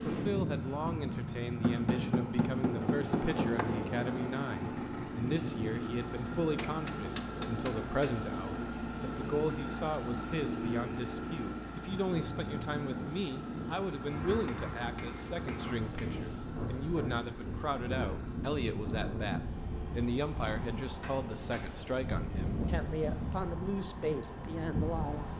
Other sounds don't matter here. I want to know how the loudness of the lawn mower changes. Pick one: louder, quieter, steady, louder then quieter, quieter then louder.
quieter.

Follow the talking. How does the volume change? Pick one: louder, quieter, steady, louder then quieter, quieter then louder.
steady.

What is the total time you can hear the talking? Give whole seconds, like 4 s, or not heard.
25 s.